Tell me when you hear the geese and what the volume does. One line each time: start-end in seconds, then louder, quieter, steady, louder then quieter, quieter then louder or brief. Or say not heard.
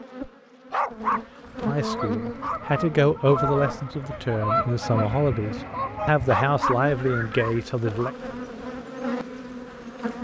1.9-7.6 louder then quieter.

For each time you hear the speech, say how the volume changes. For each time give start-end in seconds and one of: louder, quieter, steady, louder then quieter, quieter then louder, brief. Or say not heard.
1.6-8.1 steady.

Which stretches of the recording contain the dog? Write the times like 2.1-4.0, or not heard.
0.7-2.5, 6.2-8.1.